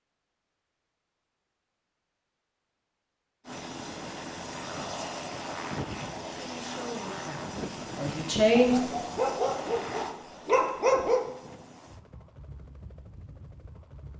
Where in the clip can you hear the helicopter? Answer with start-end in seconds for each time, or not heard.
3.5-14.1.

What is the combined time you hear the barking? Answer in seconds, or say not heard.
3 s.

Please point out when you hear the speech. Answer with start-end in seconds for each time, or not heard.
6.3-8.8.